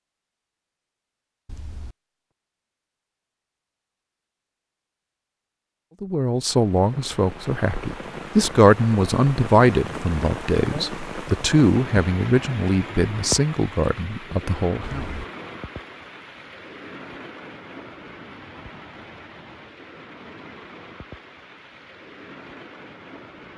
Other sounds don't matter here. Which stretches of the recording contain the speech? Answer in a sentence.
The speech can be heard from 6.0 to 15.1 s.